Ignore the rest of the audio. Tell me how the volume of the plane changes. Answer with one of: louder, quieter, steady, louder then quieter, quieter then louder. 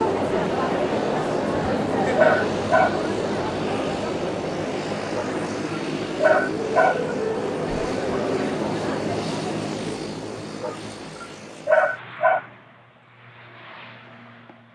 quieter.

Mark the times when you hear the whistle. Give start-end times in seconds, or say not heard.
not heard.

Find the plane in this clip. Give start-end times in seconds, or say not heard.
0.0-14.7.